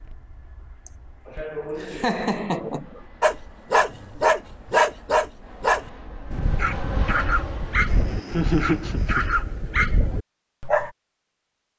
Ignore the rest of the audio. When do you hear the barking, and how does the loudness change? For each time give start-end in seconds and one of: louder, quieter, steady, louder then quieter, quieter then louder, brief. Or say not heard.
3.2-10.9 quieter.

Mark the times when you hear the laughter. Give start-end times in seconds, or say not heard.
0.8-3.0, 8.3-9.2.